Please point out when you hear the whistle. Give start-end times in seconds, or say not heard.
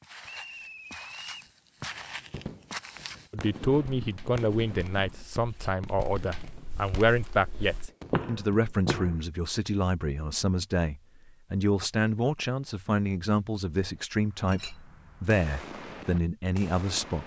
0.2-1.5.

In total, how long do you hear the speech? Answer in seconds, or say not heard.
14 s.